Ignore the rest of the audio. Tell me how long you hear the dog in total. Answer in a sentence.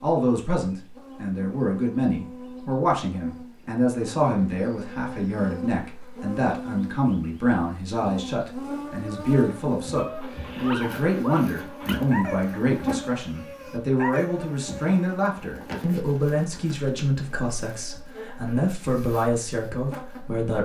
You can hear the dog for 5 seconds altogether.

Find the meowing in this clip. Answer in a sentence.
The meowing can't be heard in this clip.